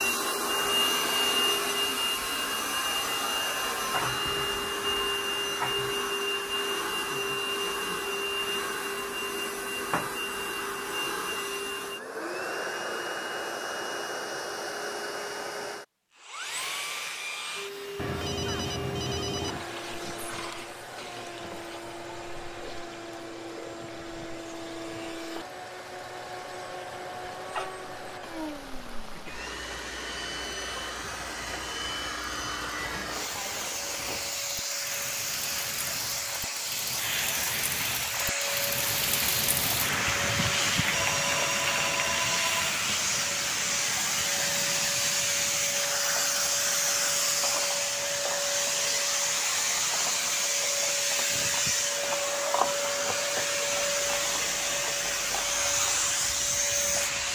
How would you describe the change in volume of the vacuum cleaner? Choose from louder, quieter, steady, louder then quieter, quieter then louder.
quieter then louder.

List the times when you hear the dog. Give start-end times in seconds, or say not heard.
not heard.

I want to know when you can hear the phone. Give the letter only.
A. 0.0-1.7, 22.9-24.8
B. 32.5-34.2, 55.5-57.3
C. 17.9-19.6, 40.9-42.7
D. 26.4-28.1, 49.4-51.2
C.